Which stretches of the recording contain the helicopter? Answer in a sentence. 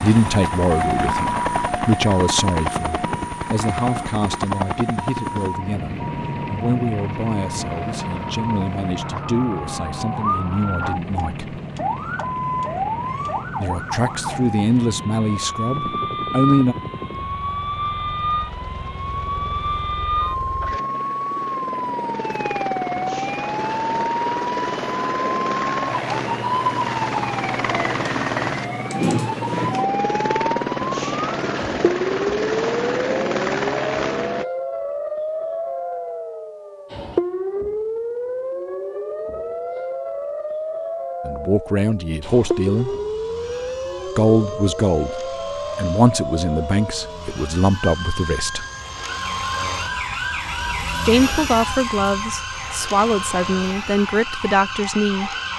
The helicopter can be heard from 0.0 to 34.5 s and from 42.2 to 55.5 s.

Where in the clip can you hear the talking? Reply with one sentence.
You can hear the talking from 0.0 to 11.6 s, from 13.6 to 16.8 s, from 41.2 to 43.0 s, from 44.0 to 48.6 s and from 51.0 to 55.4 s.